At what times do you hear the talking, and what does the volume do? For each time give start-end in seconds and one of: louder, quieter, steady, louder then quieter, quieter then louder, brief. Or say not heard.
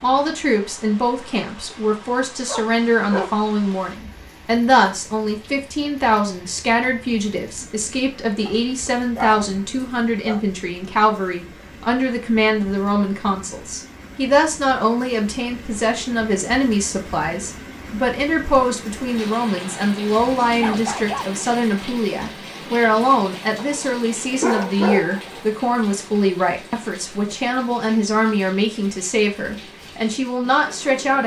0.0-31.2 steady.